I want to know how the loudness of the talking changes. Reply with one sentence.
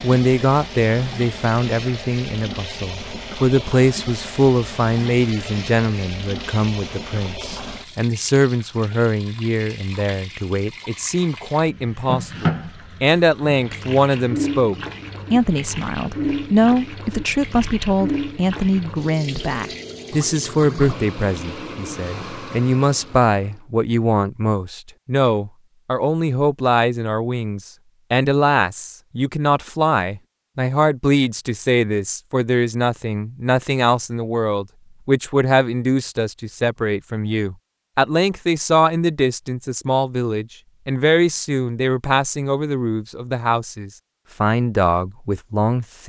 The volume of the talking stays about the same.